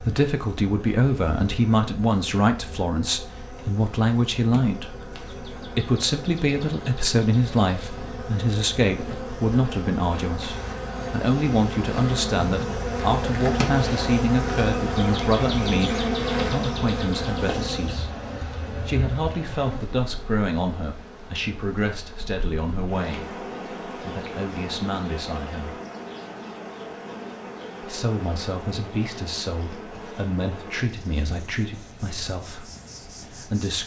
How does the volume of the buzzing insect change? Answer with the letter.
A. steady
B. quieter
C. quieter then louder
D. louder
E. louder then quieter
E.